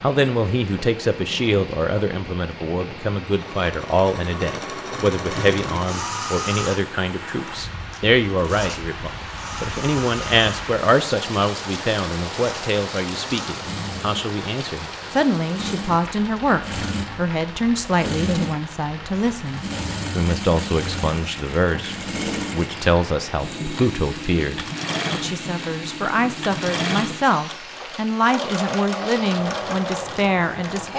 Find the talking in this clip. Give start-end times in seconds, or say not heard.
0.0-30.9.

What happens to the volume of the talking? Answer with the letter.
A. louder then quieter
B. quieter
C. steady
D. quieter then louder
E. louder
C.